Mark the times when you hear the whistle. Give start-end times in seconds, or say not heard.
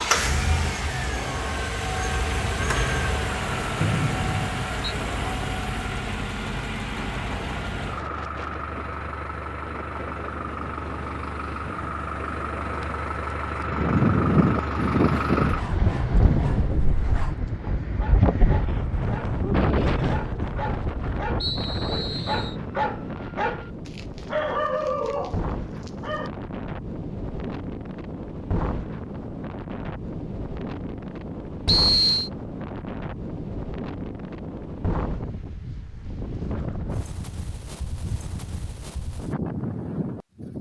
3.8-4.7, 21.4-22.6, 31.6-32.3.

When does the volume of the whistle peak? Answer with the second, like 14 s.
32 s.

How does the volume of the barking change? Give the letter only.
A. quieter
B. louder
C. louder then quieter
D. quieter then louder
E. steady
B.